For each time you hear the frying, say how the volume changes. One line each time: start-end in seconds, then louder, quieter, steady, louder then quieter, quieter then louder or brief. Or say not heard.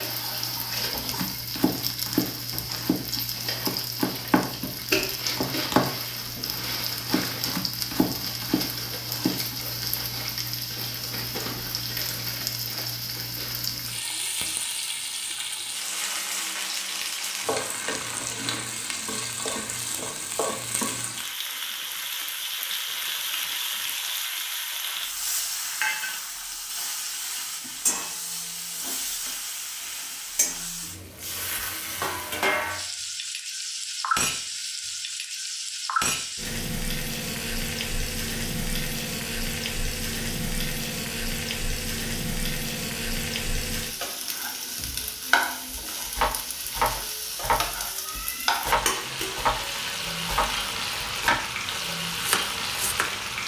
0.0-53.4 steady.